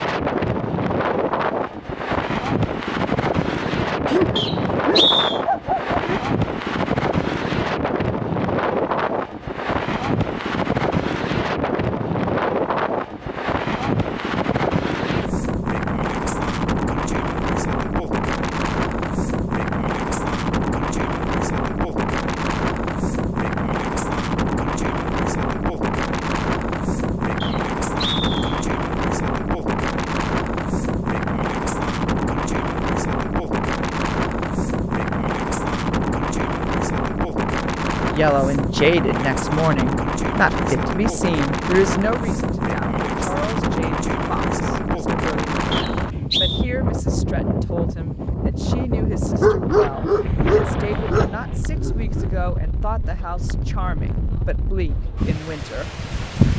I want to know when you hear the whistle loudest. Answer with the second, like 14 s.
5 s.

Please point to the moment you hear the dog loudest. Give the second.
50 s.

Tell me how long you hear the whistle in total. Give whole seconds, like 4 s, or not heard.
3 s.